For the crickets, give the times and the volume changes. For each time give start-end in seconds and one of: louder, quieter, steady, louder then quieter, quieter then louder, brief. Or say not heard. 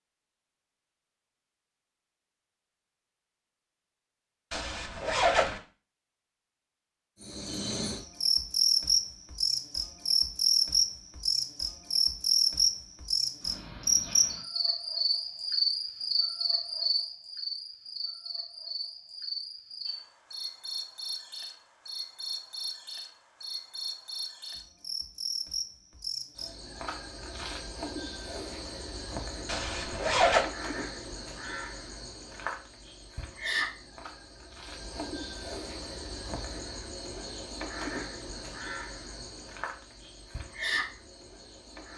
7.2-41.9 quieter.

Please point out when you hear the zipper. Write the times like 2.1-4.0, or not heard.
4.5-5.6, 29.4-30.4.